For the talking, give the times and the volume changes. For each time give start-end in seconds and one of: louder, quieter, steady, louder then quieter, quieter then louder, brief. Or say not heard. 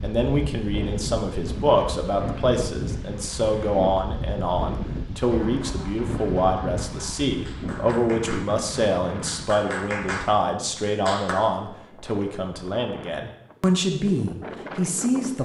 0.0-15.4 steady.